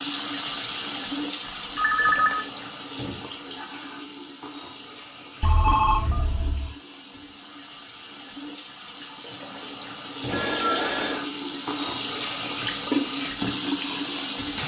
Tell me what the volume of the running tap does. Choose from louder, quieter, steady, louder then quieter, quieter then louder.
quieter then louder.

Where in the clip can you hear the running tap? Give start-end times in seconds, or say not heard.
0.0-14.6.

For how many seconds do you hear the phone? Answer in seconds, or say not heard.
3 s.